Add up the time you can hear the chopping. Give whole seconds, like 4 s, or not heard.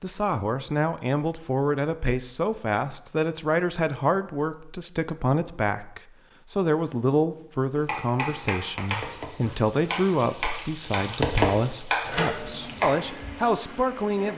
5 s.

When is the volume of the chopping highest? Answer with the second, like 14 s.
12 s.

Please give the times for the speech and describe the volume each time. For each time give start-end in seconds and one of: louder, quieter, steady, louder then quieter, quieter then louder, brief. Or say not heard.
0.0-14.3 steady.